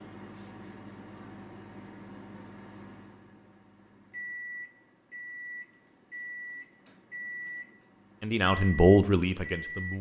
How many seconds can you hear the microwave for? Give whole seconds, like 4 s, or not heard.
10 s.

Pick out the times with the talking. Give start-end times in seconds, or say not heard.
8.2-9.9.